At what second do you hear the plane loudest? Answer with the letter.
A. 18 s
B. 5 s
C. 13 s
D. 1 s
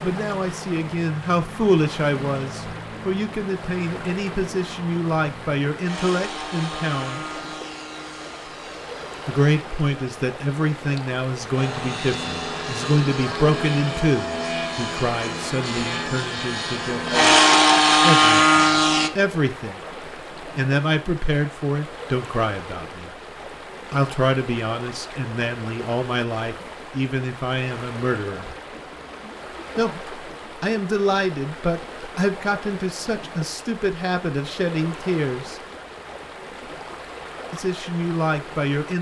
A.